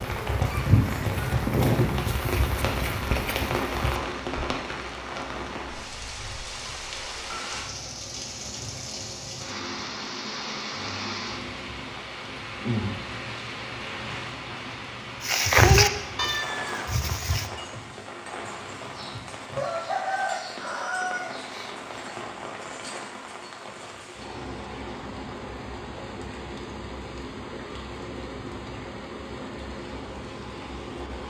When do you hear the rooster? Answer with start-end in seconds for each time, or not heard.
0.5-2.1, 18.9-22.1.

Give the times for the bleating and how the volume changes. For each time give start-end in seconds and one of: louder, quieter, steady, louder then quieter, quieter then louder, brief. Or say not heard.
0.0-4.5 quieter
15.2-17.4 brief.